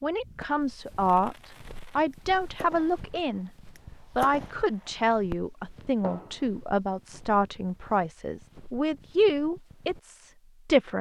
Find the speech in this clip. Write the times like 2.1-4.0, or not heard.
0.0-1.4, 1.9-3.5, 4.2-10.9.